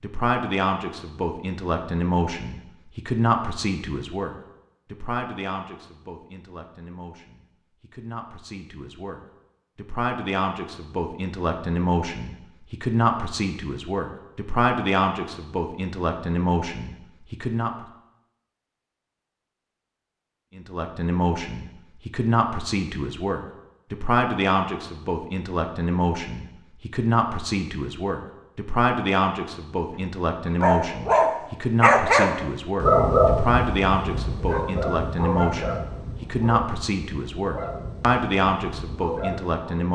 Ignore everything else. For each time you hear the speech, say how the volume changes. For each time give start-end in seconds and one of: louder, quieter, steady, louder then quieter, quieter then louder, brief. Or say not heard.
0.0-17.7 quieter then louder
20.6-39.9 steady.